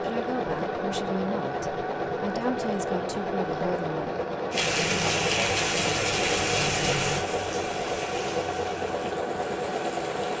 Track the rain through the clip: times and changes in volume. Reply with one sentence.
The rain can be heard from 4.5 to 10.3 s, getting quieter.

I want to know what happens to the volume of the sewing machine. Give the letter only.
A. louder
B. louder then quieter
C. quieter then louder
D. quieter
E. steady
E.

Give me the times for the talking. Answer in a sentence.
The talking can be heard from 0.0 to 4.1 s.